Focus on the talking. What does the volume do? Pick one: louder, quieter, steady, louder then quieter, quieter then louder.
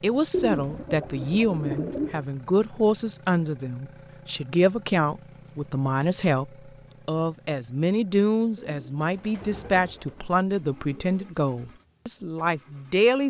steady.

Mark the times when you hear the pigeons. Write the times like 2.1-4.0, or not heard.
0.3-2.2, 8.6-11.3.